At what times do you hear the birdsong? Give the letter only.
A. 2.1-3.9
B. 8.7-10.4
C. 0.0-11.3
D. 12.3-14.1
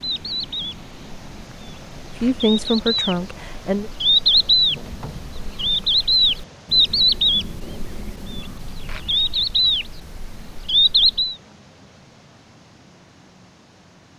C.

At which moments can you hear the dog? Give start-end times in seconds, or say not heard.
not heard.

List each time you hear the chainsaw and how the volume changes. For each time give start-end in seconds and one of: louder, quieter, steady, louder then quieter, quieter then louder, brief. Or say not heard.
not heard.